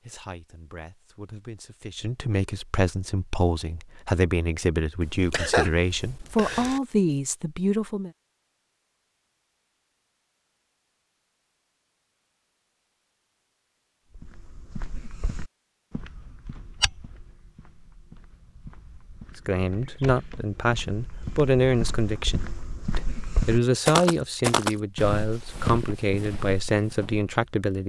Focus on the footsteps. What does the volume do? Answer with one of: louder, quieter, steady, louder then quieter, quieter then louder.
quieter then louder.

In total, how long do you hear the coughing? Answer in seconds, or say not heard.
2 s.